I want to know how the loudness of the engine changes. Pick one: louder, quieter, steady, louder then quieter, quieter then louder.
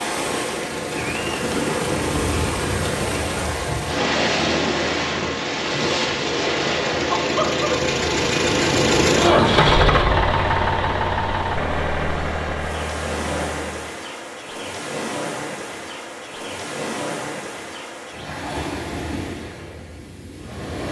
louder then quieter.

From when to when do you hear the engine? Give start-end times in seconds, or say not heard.
0.0-13.9.